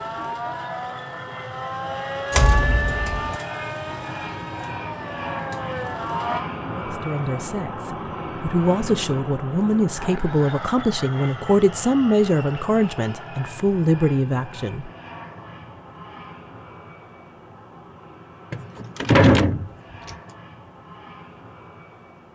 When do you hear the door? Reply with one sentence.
You can hear the door from 2.3 to 3.4 s and from 18.5 to 20.1 s.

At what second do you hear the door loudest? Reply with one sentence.
The loudest moment of the door is at 19 seconds.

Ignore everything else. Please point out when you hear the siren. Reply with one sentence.
The siren can be heard from 0.0 to 6.4 s.